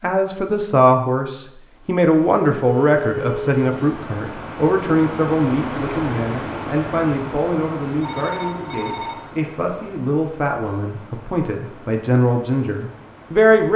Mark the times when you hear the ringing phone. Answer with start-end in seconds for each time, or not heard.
2.6-3.5, 8.0-9.2.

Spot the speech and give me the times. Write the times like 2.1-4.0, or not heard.
0.0-13.7.